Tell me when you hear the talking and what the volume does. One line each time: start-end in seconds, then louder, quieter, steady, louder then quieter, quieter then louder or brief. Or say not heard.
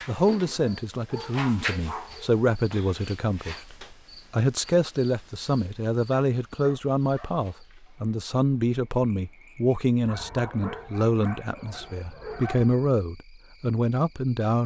0.1-14.6 steady.